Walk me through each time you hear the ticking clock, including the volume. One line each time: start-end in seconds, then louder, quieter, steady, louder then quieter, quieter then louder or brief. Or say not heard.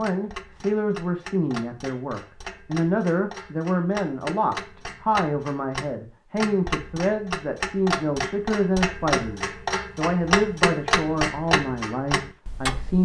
0.0-12.9 louder.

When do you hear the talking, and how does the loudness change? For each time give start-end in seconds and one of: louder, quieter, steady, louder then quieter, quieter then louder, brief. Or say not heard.
0.0-12.9 steady.